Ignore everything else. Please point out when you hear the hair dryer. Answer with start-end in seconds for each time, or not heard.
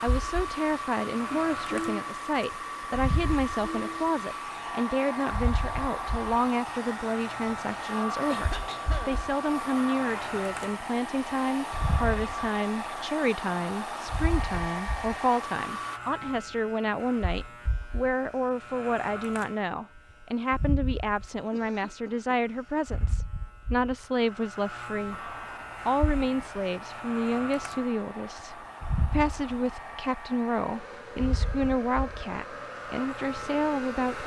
0.0-16.0, 25.1-34.2.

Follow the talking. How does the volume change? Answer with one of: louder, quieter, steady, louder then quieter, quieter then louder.
steady.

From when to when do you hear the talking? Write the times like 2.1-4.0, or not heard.
0.0-34.2.